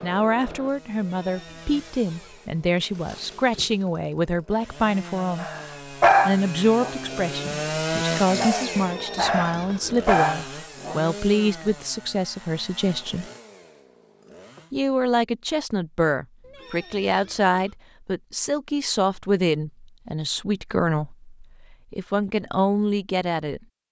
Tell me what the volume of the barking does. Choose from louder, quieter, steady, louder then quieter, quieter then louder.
quieter then louder.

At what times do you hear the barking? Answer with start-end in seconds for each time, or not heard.
5.4-10.9.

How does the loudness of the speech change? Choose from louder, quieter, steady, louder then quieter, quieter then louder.
steady.